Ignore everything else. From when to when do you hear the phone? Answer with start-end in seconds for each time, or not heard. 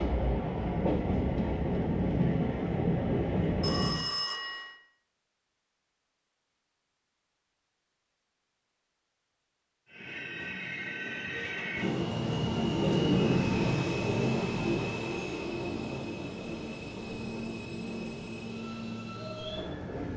3.6-4.8.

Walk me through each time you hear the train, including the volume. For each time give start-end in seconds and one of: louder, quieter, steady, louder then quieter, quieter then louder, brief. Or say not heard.
0.0-4.0 steady
9.8-20.1 louder then quieter.